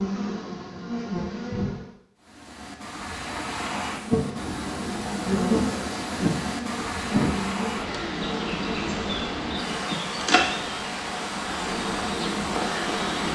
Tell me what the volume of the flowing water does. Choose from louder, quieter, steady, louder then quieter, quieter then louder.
steady.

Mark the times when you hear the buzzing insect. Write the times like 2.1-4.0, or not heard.
0.0-1.9, 3.9-13.2.